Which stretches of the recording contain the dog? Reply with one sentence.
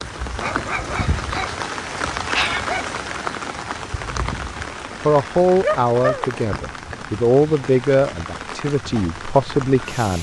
You can hear the dog from 0.3 to 3.0 s and from 5.6 to 6.3 s.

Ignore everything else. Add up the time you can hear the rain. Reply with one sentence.
You can hear the rain for 10 seconds altogether.